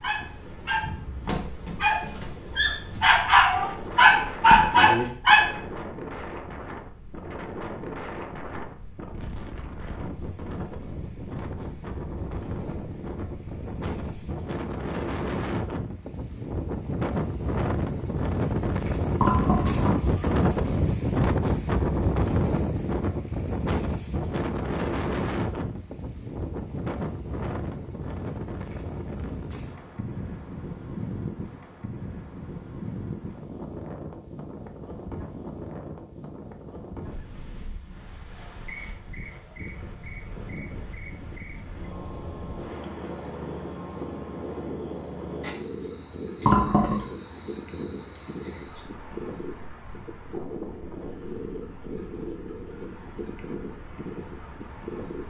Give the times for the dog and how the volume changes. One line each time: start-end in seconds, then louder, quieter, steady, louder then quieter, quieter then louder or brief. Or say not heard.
0.0-5.5 louder.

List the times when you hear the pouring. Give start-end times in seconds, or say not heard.
19.2-20.2, 46.5-47.0.